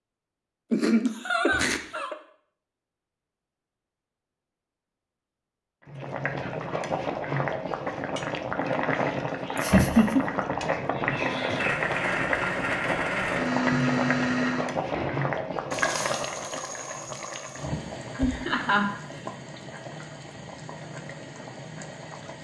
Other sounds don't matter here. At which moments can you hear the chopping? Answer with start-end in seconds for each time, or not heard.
not heard.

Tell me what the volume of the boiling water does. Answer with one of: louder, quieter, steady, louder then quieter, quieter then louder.
quieter.